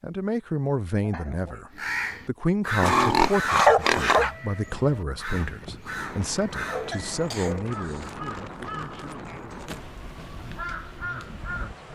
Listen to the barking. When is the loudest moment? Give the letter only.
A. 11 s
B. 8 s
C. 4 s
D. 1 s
C.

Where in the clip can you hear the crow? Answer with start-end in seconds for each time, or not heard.
1.7-11.8.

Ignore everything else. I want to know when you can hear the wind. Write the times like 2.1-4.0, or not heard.
4.6-11.8.